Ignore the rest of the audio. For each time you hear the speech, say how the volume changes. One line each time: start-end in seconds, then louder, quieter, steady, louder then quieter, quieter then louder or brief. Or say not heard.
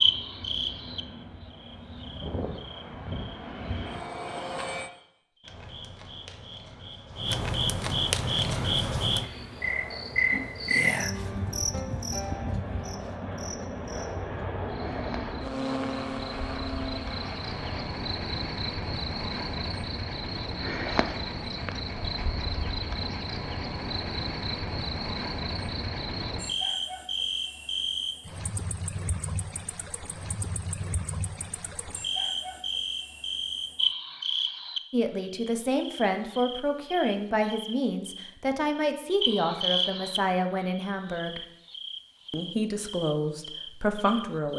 34.9-41.4 steady
42.3-44.5 brief.